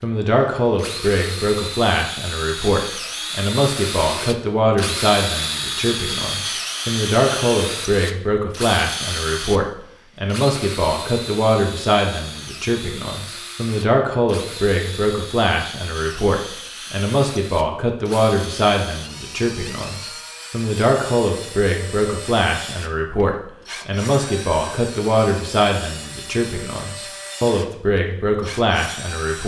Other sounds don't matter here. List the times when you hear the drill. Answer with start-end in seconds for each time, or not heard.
0.0-29.4.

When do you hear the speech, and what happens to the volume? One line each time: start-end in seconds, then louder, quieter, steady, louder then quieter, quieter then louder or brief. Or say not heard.
0.0-29.4 steady.